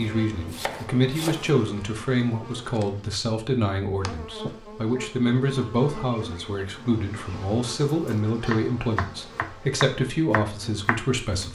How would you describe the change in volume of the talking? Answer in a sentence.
The volume of the talking stays about the same.